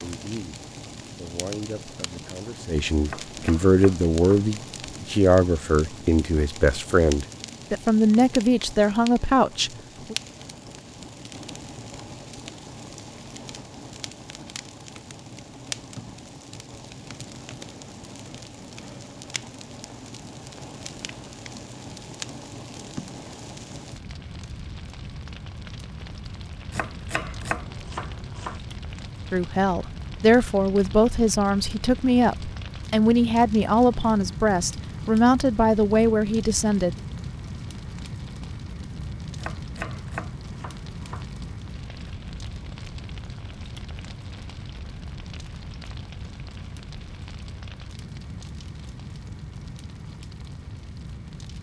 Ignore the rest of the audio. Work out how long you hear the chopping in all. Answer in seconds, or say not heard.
5 s.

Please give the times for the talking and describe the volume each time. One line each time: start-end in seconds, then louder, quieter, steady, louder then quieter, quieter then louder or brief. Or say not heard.
0.0-10.2 louder
29.3-37.0 steady.